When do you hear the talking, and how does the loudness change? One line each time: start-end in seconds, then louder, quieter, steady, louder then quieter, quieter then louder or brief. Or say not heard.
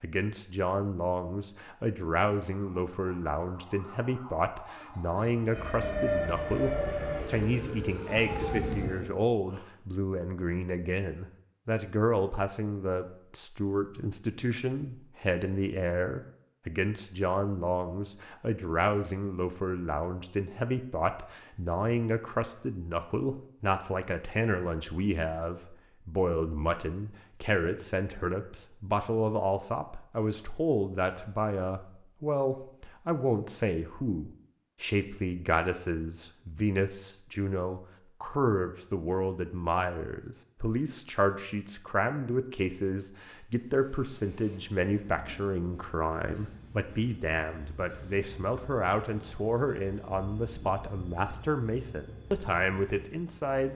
0.0-53.7 steady.